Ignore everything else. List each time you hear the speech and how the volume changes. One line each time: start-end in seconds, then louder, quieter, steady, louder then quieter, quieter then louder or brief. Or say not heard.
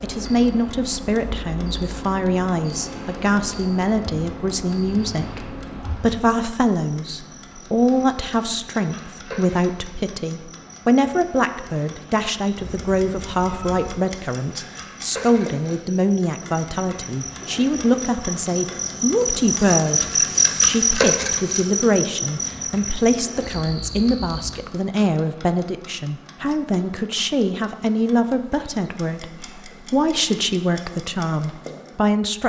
0.0-32.4 steady.